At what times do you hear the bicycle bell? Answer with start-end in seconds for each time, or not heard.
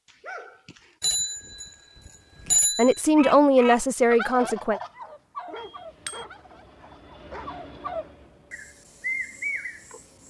1.0-3.0, 5.5-6.2.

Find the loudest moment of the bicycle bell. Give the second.
3 s.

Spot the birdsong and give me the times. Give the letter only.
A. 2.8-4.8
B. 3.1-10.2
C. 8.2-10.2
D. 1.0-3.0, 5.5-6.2
B.